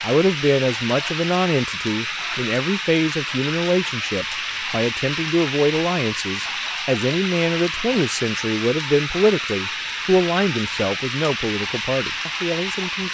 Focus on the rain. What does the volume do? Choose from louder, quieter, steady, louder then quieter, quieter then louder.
steady.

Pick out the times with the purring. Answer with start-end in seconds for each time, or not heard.
not heard.